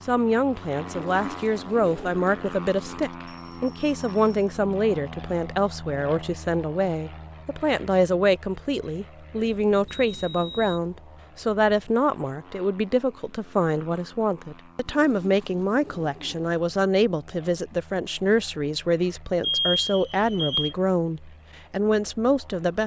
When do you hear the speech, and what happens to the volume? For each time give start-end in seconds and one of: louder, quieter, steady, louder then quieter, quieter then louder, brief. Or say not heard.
0.1-22.8 steady.